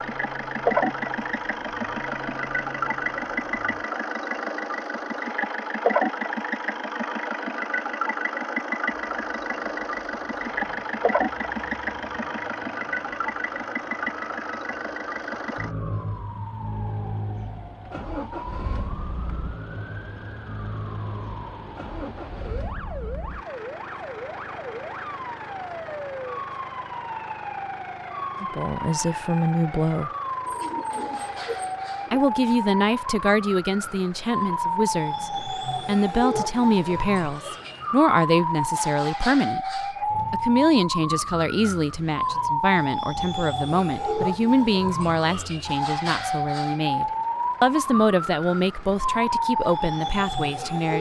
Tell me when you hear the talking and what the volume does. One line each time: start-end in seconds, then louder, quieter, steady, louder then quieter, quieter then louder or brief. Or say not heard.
28.4-30.1 brief
32.1-50.9 steady.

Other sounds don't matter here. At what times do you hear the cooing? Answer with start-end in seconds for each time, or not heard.
30.4-32.2.